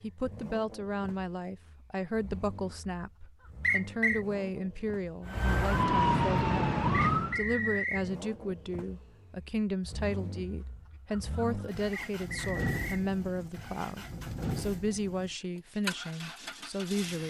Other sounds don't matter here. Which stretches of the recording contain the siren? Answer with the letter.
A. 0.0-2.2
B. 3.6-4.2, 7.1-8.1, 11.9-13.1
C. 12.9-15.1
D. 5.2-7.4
D.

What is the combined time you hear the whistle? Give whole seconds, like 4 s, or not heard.
3 s.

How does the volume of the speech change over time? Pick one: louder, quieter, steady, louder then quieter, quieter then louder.
steady.